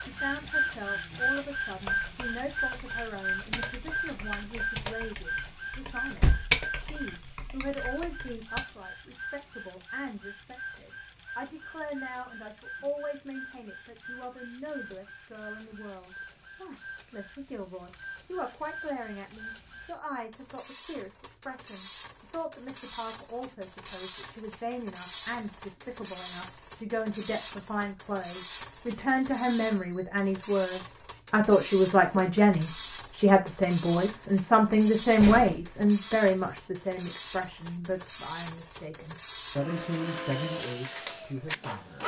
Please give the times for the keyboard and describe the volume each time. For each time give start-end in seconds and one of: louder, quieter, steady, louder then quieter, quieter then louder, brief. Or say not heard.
1.6-8.6 louder then quieter.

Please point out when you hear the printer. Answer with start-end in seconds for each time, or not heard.
0.0-42.0.